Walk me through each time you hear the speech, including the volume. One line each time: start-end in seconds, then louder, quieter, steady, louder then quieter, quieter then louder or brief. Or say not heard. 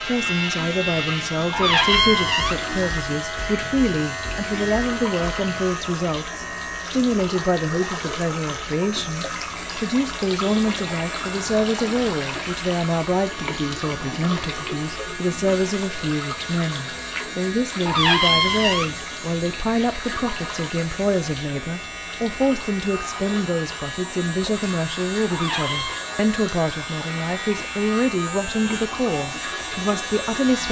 0.1-30.6 steady.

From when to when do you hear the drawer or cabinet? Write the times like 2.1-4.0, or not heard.
1.5-2.6, 17.9-18.9, 25.3-26.1.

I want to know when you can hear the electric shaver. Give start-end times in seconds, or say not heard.
0.0-30.6.